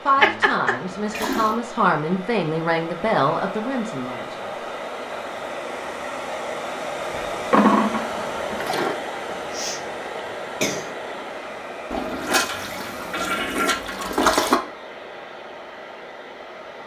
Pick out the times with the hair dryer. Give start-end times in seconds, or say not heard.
0.0-16.8.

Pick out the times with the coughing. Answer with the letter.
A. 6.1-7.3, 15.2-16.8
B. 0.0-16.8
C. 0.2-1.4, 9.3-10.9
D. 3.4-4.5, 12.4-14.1
C.